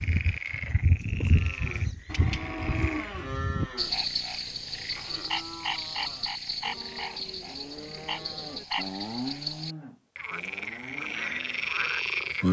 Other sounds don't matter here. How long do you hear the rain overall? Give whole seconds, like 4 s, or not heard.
not heard.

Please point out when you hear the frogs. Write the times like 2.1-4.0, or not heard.
0.0-12.4.